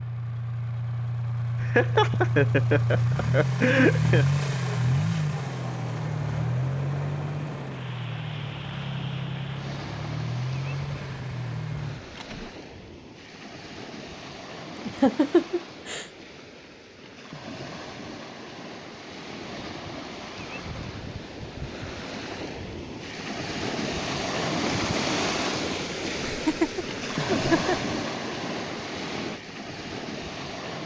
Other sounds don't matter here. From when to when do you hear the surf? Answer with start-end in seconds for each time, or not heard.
5.4-30.8.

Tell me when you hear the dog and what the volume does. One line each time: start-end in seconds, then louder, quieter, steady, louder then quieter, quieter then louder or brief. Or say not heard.
not heard.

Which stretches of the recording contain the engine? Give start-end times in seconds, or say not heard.
0.0-12.5.